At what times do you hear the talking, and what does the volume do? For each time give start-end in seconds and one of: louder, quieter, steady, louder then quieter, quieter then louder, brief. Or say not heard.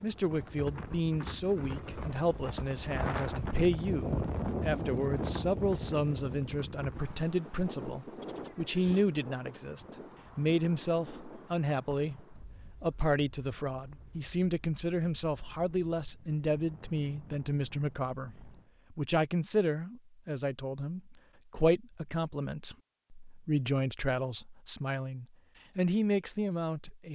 0.0-27.0 steady.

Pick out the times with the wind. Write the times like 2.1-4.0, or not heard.
0.0-18.7.